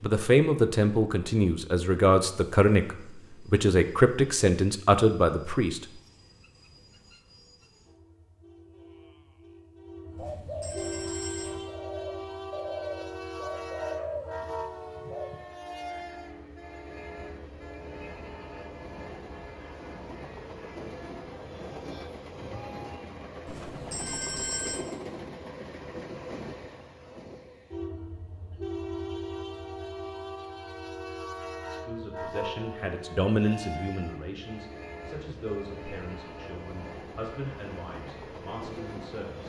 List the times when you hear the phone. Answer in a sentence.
The phone can be heard from 10.2 to 11.6 s and from 23.4 to 24.9 s.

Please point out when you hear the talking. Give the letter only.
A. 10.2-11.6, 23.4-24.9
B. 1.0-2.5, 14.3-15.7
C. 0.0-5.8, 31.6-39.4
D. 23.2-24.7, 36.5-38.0
C.